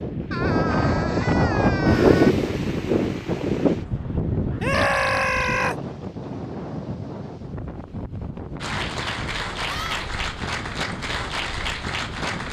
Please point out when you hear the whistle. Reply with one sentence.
The whistle can't be heard in this clip.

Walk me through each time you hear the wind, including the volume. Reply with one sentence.
You can hear the wind from 0.0 to 12.4 s, getting quieter.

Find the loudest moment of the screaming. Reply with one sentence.
The volume of the screaming peaks at 5 seconds.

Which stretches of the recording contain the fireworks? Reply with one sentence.
You can't hear the fireworks here.